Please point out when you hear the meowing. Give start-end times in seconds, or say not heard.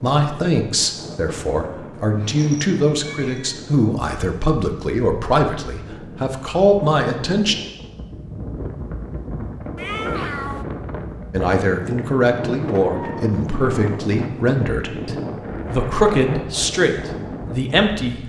2.0-3.6, 9.8-10.7, 12.9-13.3.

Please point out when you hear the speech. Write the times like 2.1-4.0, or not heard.
0.0-7.5, 11.3-18.2.